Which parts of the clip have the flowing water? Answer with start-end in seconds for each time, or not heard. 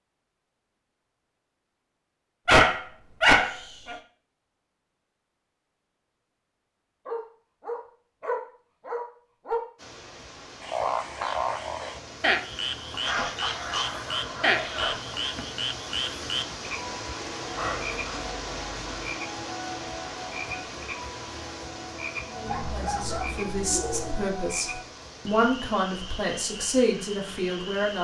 9.8-27.9.